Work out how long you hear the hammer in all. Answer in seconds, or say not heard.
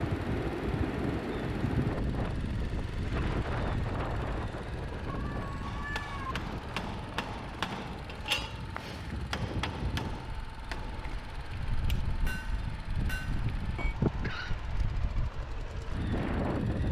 8 s.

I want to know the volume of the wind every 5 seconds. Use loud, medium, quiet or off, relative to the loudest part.
loud, medium, medium, loud.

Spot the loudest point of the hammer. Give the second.
8 s.